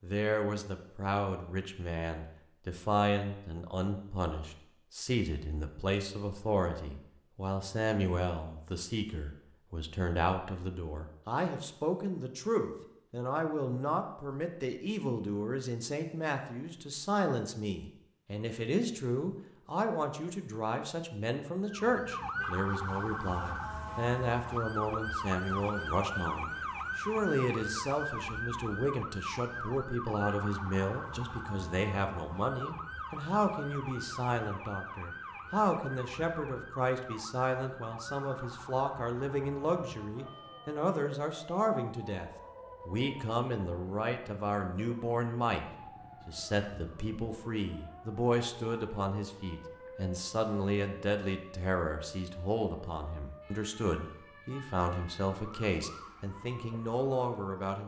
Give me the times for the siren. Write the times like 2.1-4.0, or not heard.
21.6-57.7.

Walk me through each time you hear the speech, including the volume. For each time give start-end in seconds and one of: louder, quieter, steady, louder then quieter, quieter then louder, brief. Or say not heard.
0.0-45.6 steady
46.2-57.8 steady.